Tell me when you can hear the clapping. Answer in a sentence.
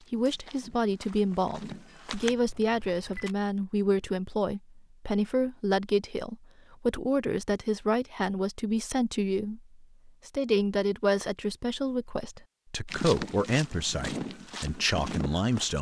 The clapping can't be heard in this clip.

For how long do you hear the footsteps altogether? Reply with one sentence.
You can hear the footsteps for 5 seconds altogether.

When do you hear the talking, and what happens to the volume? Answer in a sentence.
The talking can be heard from 0.1 to 15.7 s, at a steady volume.